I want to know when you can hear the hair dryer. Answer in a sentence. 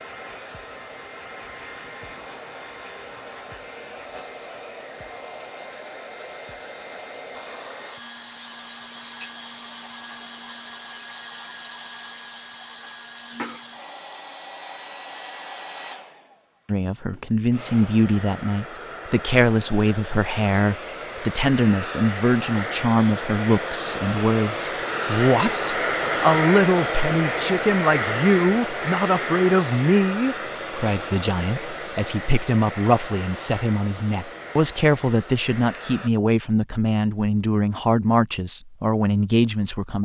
The hair dryer can be heard from 0.0 to 36.1 s.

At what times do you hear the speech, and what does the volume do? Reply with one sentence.
You can hear the speech from 16.6 to 40.0 s, at a steady volume.